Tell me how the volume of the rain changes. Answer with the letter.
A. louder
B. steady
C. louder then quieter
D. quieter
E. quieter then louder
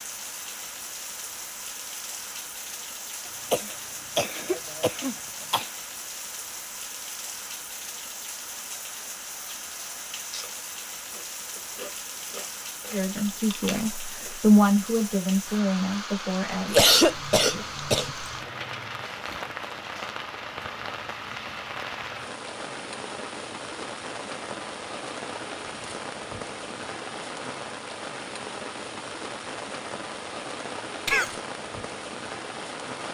B.